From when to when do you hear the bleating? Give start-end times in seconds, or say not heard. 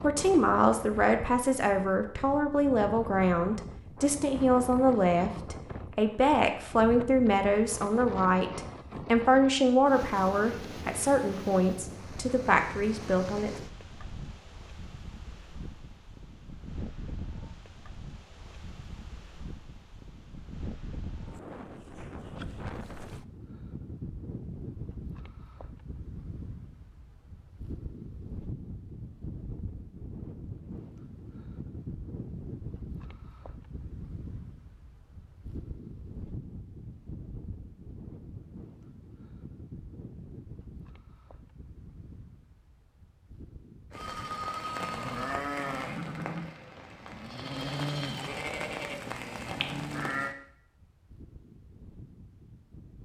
43.9-50.4.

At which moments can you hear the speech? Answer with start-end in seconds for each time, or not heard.
0.0-13.5.